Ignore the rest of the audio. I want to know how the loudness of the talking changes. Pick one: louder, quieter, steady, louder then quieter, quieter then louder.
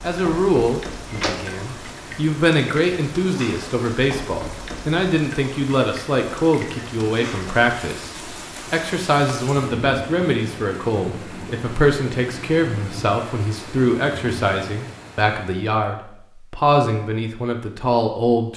steady.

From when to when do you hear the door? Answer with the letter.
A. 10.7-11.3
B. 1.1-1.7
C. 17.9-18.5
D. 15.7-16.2
B.